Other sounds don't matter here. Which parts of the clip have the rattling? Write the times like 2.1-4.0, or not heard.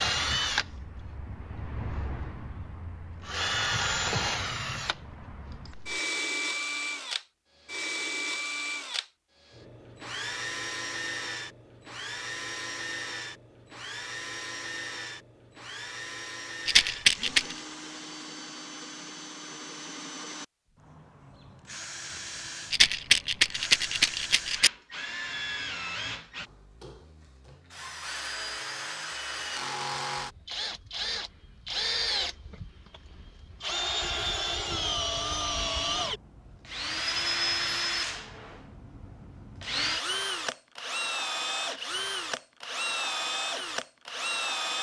16.6-17.6, 22.7-24.7.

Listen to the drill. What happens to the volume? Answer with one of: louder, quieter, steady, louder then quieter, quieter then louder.
quieter then louder.